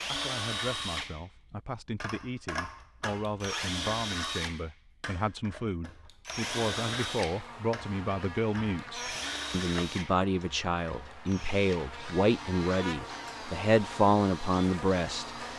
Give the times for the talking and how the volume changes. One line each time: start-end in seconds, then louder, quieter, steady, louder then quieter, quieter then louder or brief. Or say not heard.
0.1-15.3 louder.